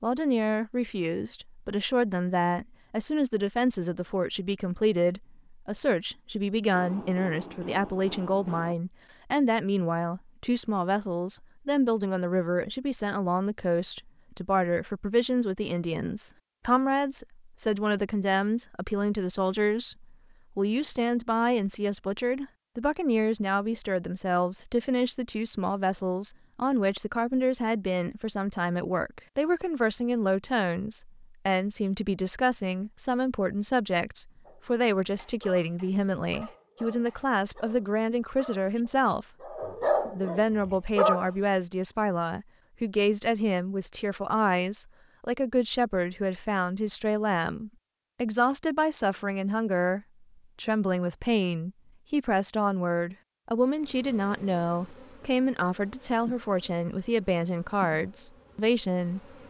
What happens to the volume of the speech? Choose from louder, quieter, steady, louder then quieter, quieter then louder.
steady.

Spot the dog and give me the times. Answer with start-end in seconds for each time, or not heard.
34.5-41.3.